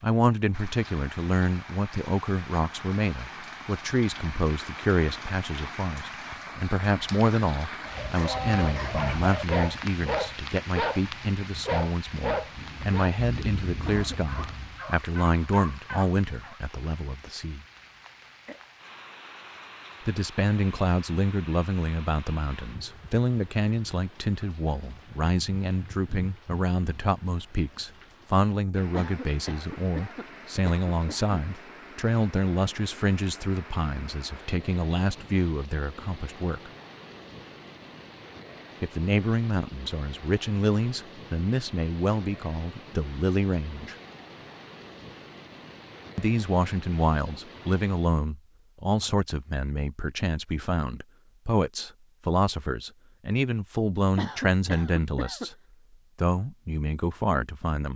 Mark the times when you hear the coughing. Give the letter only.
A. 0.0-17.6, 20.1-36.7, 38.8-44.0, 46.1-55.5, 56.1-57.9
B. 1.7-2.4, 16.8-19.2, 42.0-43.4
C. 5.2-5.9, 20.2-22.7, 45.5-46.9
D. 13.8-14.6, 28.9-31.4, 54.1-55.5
D.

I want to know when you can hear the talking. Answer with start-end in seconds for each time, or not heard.
0.0-17.6, 20.1-36.7, 38.8-44.0, 46.1-55.5, 56.1-57.9.